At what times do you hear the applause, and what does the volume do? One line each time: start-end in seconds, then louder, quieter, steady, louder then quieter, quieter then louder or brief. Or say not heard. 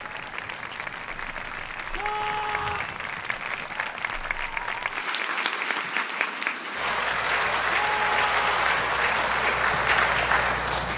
0.0-10.9 louder.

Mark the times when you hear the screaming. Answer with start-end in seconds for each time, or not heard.
1.9-2.9, 7.7-8.6.